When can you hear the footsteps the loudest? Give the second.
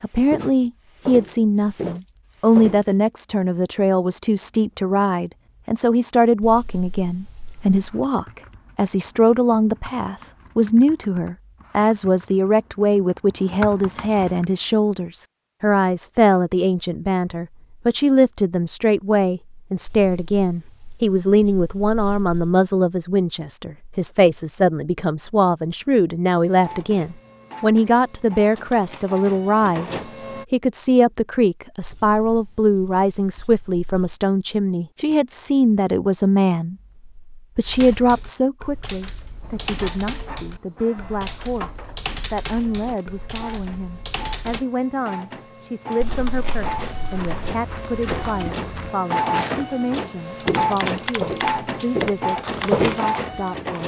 53 s.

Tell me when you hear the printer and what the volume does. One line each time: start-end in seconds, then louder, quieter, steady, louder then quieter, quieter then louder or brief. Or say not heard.
26.4-30.4 louder
39.4-53.8 louder.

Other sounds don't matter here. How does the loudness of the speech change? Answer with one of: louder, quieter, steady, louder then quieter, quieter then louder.
quieter.